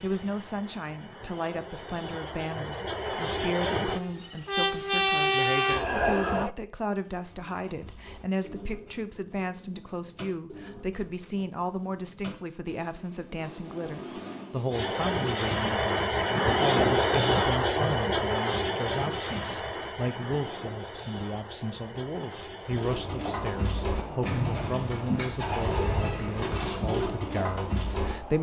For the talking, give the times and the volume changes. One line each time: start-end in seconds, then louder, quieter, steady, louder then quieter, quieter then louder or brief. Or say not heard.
0.0-28.3 steady.